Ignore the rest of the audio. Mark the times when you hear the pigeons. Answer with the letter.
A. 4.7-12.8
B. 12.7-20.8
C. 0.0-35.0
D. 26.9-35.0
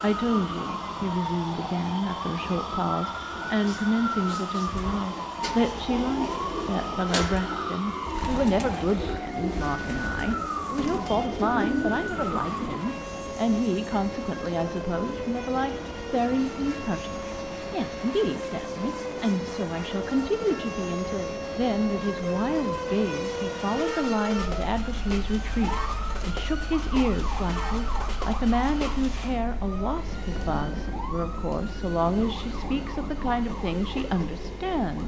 A.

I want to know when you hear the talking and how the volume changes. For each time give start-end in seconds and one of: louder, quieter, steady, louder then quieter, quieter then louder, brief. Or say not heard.
0.0-35.0 steady.